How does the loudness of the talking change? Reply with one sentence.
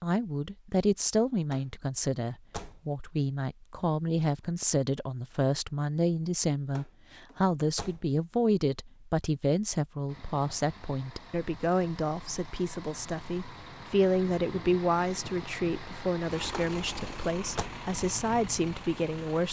The loudness of the talking stays about the same.